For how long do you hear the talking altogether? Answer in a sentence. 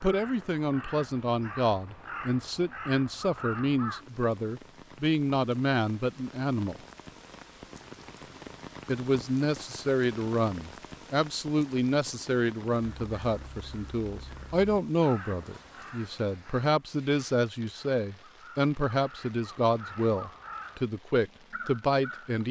The talking can be heard for 20 seconds in total.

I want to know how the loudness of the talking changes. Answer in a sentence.
The volume of the talking stays about the same.